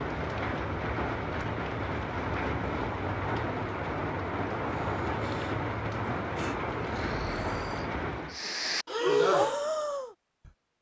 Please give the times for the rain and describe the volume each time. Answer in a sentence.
The rain can be heard from 0.0 to 8.4 s, at a steady volume.